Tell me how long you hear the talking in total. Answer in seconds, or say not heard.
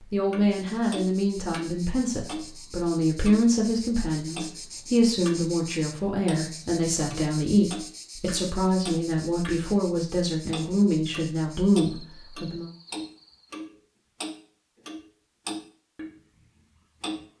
13 s.